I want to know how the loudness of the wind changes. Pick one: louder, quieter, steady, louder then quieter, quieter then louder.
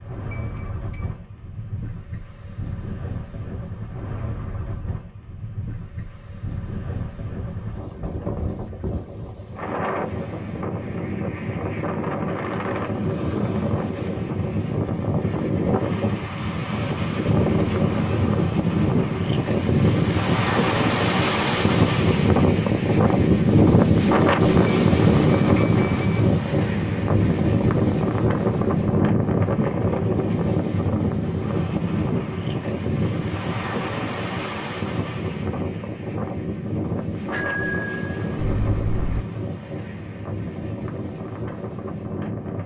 louder then quieter.